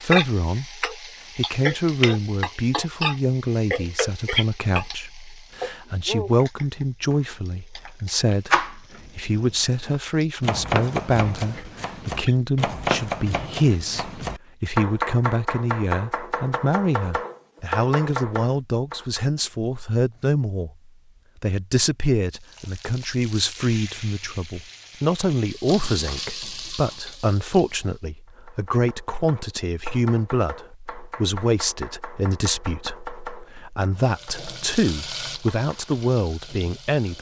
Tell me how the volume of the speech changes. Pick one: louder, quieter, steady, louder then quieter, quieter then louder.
steady.